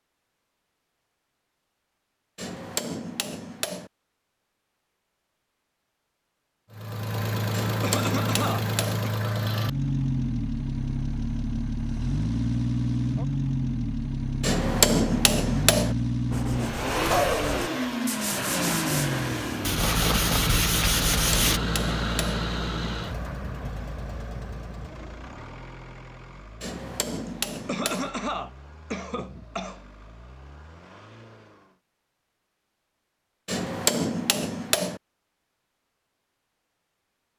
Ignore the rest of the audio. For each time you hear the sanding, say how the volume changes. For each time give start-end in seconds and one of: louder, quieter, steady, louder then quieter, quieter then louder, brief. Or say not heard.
16.3-21.6 louder.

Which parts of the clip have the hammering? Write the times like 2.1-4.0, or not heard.
2.4-3.9, 7.5-9.1, 14.4-15.9, 21.1-22.4, 26.6-28.1, 33.5-35.0.